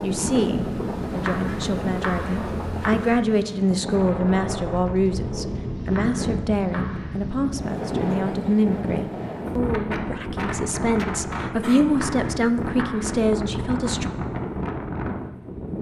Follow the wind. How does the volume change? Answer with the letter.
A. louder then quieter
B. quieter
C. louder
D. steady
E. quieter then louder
D.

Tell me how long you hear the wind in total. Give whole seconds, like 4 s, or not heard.
16 s.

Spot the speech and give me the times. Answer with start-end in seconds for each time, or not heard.
0.0-14.1.